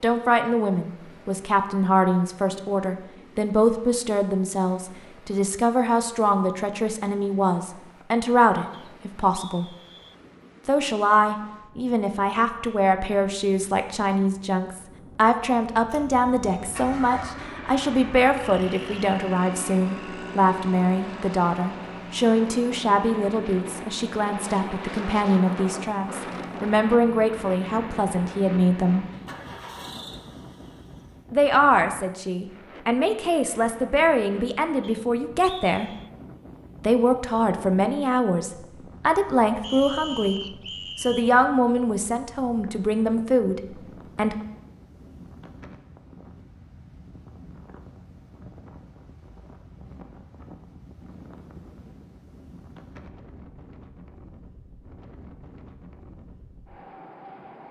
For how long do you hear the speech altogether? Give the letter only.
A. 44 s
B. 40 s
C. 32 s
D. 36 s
B.